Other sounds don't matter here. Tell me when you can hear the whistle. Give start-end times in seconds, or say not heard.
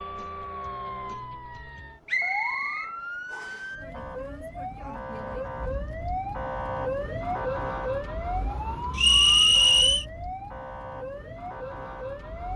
2.0-3.6, 8.9-10.1.